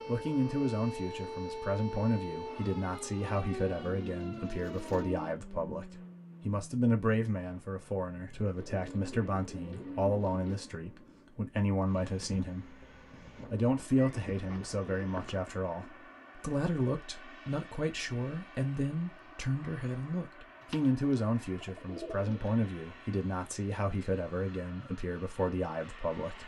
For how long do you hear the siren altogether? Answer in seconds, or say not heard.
5 s.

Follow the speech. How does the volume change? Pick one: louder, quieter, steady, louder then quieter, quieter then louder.
steady.